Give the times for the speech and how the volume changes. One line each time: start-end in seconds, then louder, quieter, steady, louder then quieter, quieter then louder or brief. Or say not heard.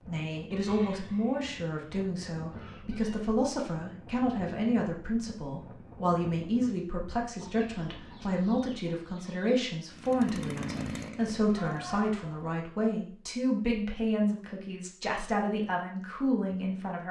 0.1-17.0 steady.